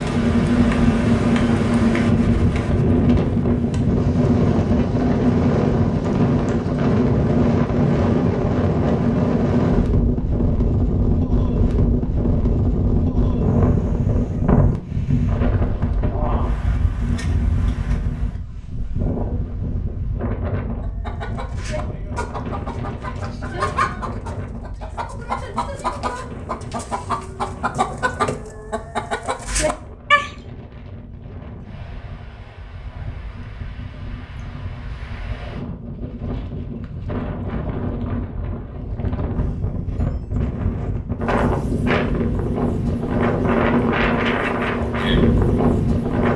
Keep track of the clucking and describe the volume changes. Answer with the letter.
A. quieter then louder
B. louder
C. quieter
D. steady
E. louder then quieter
B.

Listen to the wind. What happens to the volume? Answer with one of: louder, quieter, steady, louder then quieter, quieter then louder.
quieter then louder.